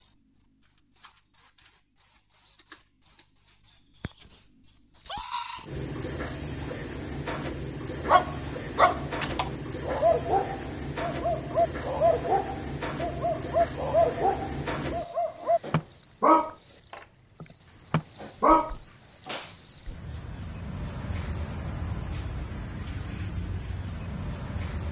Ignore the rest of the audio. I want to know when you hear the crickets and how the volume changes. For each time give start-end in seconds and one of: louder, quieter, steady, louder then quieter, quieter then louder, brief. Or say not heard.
0.0-24.8 steady.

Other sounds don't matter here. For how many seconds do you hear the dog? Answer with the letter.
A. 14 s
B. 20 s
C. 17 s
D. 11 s
D.